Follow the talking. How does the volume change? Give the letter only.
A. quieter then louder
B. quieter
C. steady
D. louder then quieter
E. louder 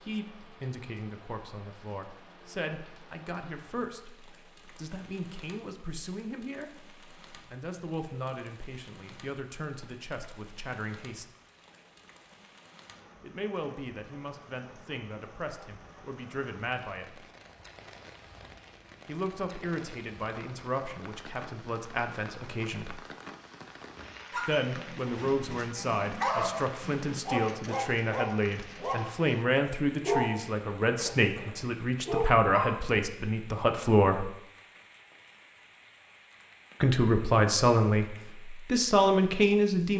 E.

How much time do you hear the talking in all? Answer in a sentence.
The talking can be heard for 32 seconds in total.